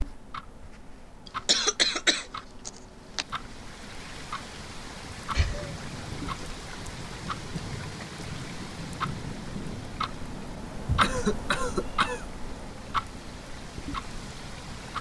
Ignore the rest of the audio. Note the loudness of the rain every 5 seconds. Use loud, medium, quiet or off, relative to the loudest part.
medium, loud, medium.